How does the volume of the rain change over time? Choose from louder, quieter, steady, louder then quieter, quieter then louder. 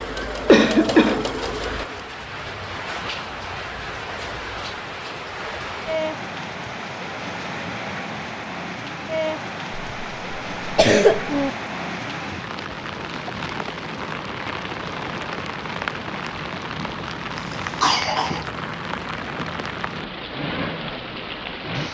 steady.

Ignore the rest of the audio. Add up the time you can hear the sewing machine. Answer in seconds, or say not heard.
2 s.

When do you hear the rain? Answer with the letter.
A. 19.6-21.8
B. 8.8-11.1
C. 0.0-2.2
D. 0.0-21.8
D.